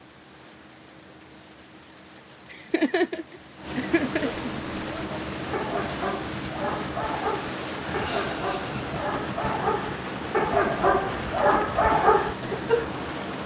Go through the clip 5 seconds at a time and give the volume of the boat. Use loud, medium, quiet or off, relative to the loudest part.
medium, loud, loud.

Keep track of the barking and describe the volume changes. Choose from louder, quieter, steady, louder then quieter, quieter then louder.
louder.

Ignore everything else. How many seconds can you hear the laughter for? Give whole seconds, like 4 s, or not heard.
4 s.